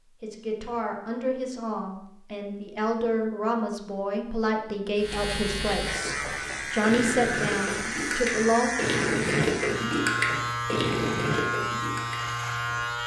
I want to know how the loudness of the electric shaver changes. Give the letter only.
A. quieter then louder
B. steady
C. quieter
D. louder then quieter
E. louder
B.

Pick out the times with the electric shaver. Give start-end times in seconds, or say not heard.
5.0-13.0.